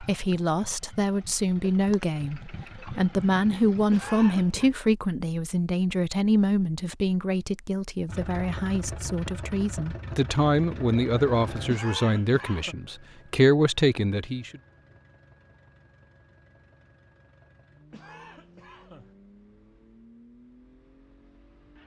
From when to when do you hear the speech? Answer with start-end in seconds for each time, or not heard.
0.0-14.6.